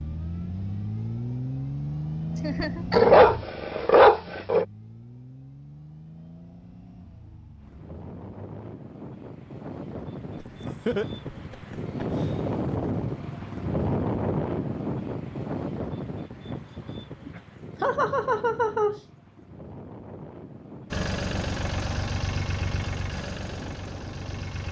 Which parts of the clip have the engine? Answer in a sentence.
You can hear the engine from 0.0 to 8.8 s and from 20.9 to 24.6 s.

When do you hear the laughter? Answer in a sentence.
The laughter can be heard from 2.4 to 3.1 s, from 10.3 to 12.3 s and from 17.2 to 19.0 s.